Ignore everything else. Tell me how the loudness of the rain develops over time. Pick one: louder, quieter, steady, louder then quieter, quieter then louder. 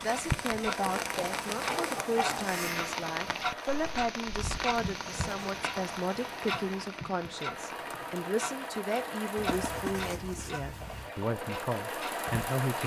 quieter.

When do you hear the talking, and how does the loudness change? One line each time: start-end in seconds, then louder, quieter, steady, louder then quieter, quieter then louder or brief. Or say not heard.
0.0-12.8 steady.